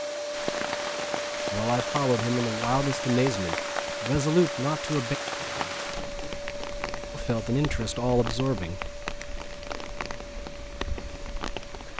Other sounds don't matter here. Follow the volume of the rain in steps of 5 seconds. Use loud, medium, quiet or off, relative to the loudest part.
loud, loud, medium.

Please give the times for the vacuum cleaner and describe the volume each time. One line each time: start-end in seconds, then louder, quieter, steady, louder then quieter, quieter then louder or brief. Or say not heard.
0.0-11.9 quieter.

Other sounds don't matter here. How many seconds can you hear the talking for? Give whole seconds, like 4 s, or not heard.
5 s.